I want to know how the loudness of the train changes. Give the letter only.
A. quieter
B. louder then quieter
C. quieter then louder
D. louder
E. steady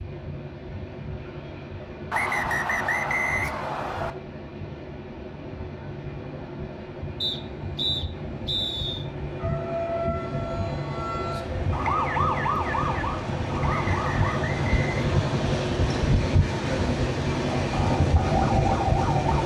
D.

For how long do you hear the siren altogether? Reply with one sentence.
You can hear the siren for 7 seconds altogether.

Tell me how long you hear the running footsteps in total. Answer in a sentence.
The running footsteps can't be heard in this clip.